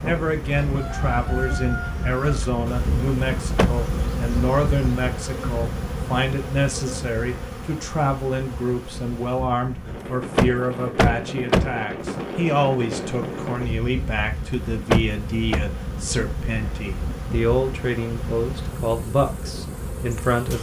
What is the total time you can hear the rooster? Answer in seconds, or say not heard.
2 s.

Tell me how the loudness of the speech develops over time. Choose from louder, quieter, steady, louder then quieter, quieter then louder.
steady.